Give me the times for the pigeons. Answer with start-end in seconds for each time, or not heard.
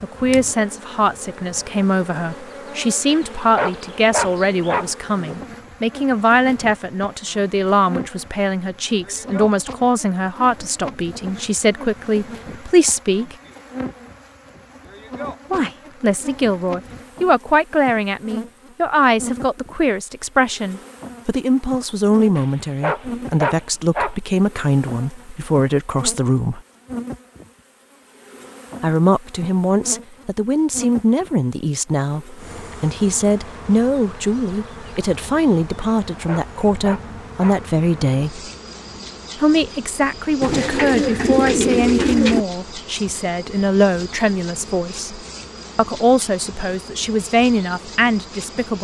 40.4-42.5.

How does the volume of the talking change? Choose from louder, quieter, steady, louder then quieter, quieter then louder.
steady.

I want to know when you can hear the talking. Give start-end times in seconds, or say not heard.
0.0-13.3, 15.5-26.6, 28.8-38.5, 39.4-48.7.